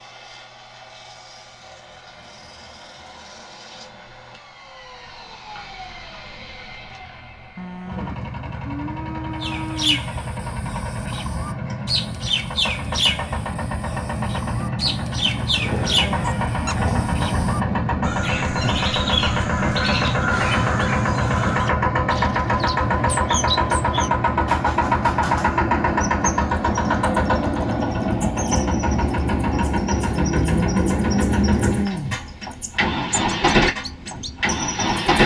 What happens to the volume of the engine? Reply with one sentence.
The volume of the engine goes up.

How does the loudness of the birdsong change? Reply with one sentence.
The loudness of the birdsong goes down.